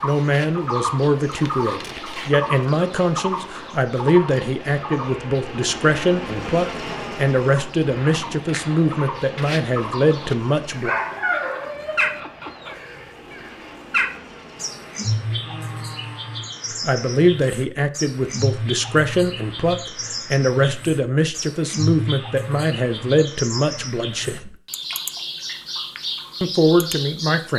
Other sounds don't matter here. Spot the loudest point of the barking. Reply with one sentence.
The volume of the barking peaks at 11 seconds.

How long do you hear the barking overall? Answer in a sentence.
The barking can be heard for 2 seconds in total.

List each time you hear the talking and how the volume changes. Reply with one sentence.
The talking can be heard from 0.0 to 10.9 s, at a steady volume; from 16.7 to 24.6 s, at a steady volume; and briefly from 26.4 to 27.5 s.